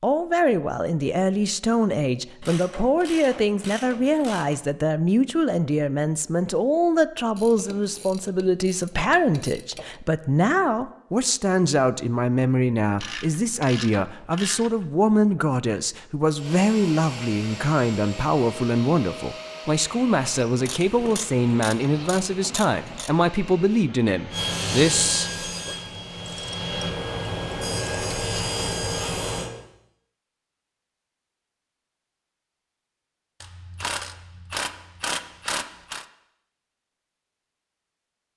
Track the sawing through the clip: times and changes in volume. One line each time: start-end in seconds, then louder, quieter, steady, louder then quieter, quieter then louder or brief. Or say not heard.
24.3-29.5 quieter then louder.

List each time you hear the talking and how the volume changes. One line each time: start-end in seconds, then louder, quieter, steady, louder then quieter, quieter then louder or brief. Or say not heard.
0.0-25.8 steady.